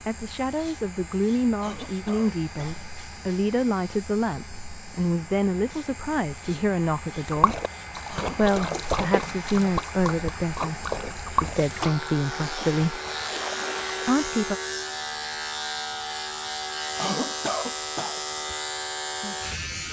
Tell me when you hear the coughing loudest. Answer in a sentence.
The loudest moment of the coughing is at 17 seconds.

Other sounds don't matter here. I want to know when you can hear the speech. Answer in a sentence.
The speech can be heard from 0.1 to 7.6 s, from 8.3 to 13.0 s and from 14.1 to 14.6 s.